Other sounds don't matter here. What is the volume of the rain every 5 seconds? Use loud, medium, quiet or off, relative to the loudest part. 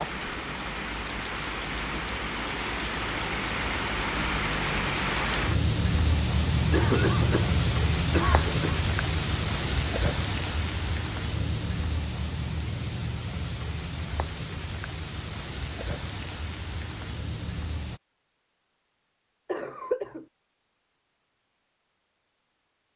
loud, loud, medium, medium, off.